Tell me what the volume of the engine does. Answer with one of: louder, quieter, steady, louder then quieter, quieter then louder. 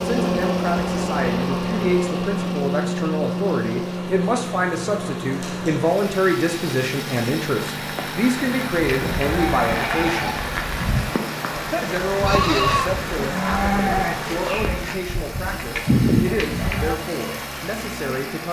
quieter.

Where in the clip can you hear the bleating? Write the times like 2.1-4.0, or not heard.
8.8-16.9.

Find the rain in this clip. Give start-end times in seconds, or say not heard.
0.0-14.9.